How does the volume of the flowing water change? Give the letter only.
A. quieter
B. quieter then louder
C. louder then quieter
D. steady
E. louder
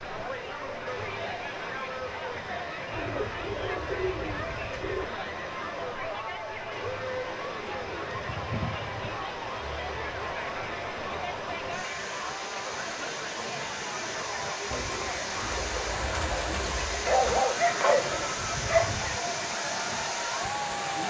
E.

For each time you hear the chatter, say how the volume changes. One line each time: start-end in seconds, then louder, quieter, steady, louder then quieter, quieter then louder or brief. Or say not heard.
0.0-21.0 steady.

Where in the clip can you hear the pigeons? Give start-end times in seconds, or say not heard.
2.9-5.2, 7.8-9.2, 14.7-17.4.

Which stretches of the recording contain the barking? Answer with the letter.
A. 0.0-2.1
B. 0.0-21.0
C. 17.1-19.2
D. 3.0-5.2
C.